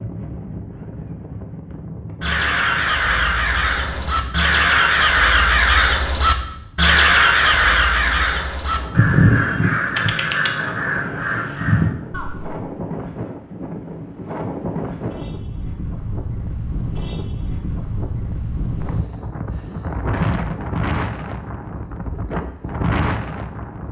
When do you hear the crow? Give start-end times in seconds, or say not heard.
2.2-12.6.